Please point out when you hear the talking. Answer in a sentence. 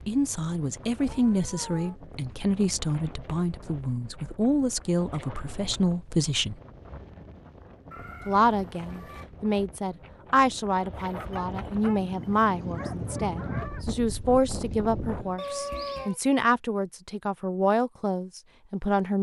You can hear the talking from 0.1 to 6.5 s and from 8.2 to 19.1 s.